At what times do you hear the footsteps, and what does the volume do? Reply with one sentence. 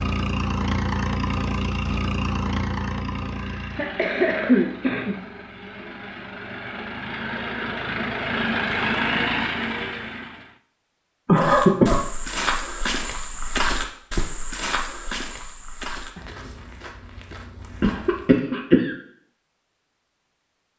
The footsteps can be heard from 11.3 to 18.4 s, getting quieter.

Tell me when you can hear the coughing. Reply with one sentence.
You can hear the coughing from 3.4 to 5.2 s, from 11.2 to 12.0 s and from 17.8 to 18.9 s.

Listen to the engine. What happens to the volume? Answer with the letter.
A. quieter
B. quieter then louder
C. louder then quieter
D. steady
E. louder
B.